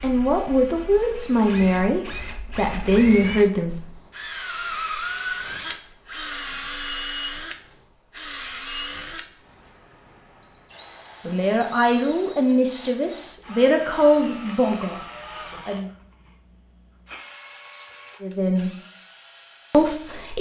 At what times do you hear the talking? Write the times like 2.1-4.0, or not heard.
0.0-3.8, 11.2-15.9, 18.2-18.7, 19.7-20.3.